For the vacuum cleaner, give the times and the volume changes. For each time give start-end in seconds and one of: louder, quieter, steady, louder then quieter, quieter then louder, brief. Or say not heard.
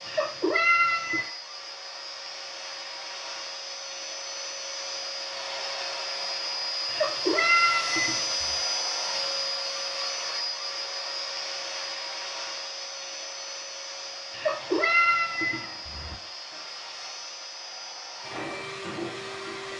0.0-19.7 louder then quieter.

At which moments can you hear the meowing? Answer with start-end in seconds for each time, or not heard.
0.1-1.2, 6.8-8.2, 14.3-16.1.